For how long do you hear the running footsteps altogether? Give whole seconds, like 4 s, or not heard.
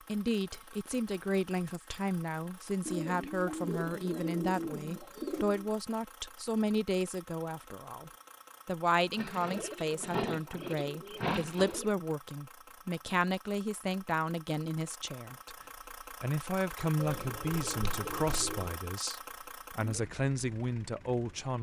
not heard.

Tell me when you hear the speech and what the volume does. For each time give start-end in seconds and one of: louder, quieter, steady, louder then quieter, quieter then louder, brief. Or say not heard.
0.1-21.5 steady.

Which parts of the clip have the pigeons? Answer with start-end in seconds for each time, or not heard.
2.9-5.7, 9.2-11.9, 16.9-18.8.